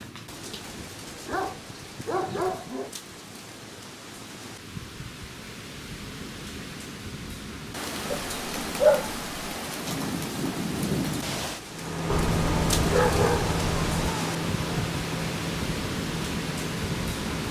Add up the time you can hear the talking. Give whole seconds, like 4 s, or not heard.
not heard.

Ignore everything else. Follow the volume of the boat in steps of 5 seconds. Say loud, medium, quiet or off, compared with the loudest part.
off, off, loud, medium.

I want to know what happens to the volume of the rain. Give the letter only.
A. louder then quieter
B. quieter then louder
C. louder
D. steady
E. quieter
C.